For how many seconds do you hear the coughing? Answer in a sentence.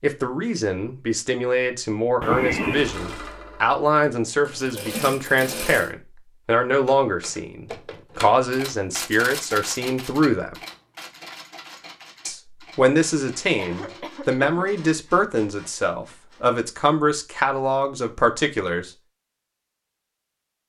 The coughing can be heard for 2 seconds in total.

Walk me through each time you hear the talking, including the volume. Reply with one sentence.
The talking can be heard from 0.0 to 10.6 s, at a steady volume; and from 12.2 to 18.9 s, at a steady volume.